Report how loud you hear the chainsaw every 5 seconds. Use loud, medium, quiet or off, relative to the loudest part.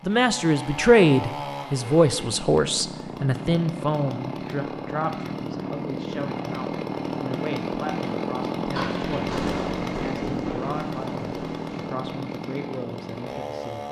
medium, loud, loud.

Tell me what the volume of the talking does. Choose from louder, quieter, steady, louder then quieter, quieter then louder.
quieter.